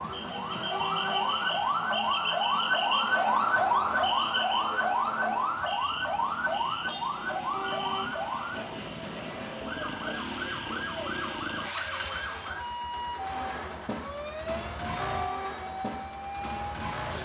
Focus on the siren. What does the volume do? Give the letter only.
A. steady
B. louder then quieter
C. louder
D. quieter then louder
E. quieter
E.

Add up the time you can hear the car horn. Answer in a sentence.
You can hear the car horn for 2 seconds altogether.